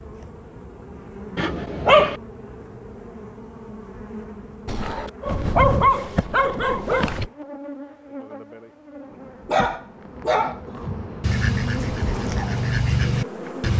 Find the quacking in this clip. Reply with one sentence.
You can hear the quacking from 11.2 to 13.7 s.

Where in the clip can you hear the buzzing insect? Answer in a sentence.
You can hear the buzzing insect from 0.0 to 13.7 s.